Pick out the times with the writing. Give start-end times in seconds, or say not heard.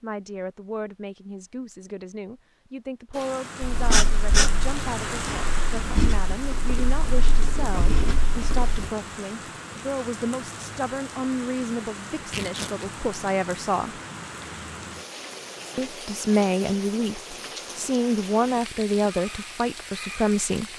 3.6-8.9.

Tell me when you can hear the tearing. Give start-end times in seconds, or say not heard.
12.2-12.9.